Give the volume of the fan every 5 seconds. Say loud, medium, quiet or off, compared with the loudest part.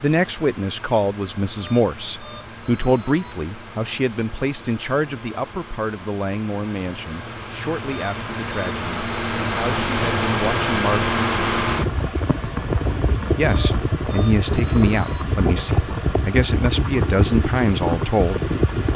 quiet, medium, loud, loud.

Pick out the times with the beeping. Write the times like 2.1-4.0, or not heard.
1.6-3.4, 7.8-9.7, 13.4-15.2.